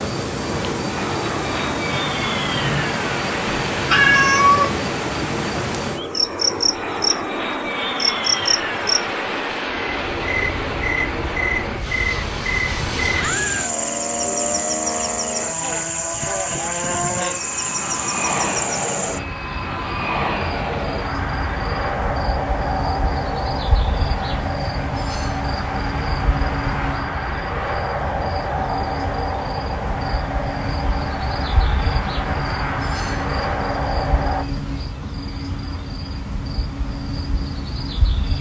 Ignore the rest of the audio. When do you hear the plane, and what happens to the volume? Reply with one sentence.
You can hear the plane from 0.0 to 34.5 s, at a steady volume.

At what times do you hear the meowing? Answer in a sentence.
The meowing can be heard from 3.5 to 4.8 s.